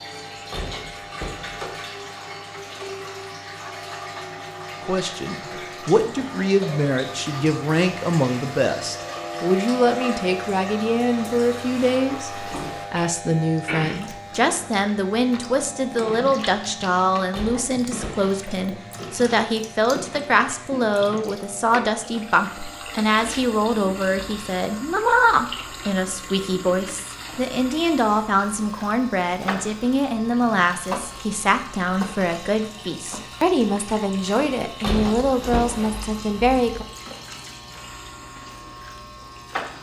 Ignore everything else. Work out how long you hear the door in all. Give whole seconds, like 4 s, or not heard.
4 s.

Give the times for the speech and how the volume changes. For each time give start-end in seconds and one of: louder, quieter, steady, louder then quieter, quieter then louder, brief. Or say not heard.
4.8-36.9 steady.